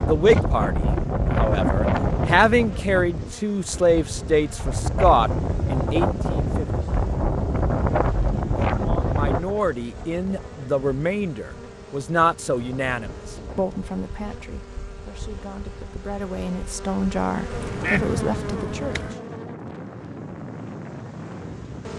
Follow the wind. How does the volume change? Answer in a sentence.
The volume of the wind goes down, then up.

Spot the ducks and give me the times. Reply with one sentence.
You can hear the ducks from 17.5 to 19.1 s.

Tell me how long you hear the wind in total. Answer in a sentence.
The wind can be heard for 22 seconds in total.